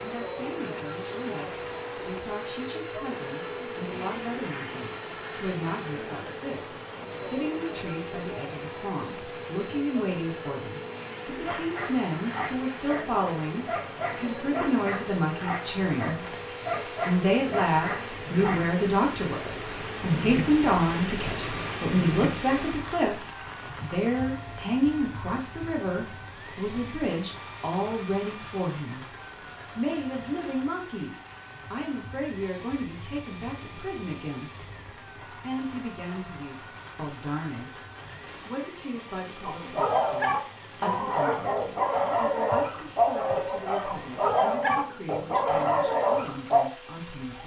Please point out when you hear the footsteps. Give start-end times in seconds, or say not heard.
not heard.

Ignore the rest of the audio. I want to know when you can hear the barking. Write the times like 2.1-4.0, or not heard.
11.4-18.6, 39.5-46.6.